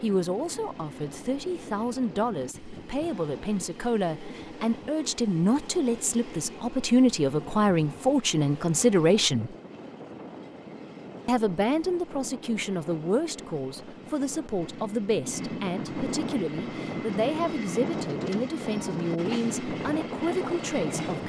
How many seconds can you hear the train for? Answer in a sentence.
The train can be heard for 21 seconds in total.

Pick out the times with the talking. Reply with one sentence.
You can hear the talking from 0.0 to 9.6 s and from 11.2 to 21.2 s.